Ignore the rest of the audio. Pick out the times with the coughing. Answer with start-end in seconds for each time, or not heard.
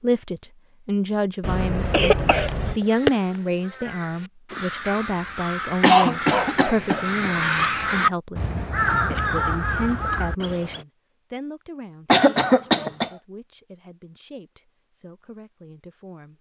1.4-2.8, 5.8-7.4, 12.1-13.1.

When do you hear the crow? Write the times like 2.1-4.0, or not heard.
2.2-10.8.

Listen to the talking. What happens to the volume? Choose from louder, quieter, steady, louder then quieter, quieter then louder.
quieter.